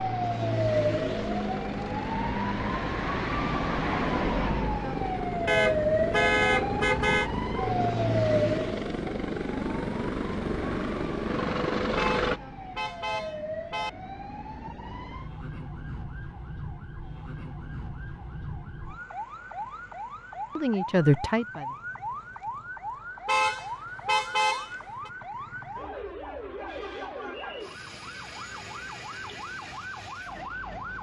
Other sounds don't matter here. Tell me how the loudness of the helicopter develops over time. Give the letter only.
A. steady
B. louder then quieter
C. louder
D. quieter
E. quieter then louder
C.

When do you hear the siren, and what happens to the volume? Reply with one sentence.
The siren can be heard from 0.0 to 30.9 s, getting quieter.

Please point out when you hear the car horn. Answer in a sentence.
The car horn can be heard from 5.5 to 7.3 s, from 11.9 to 13.9 s and from 23.2 to 25.1 s.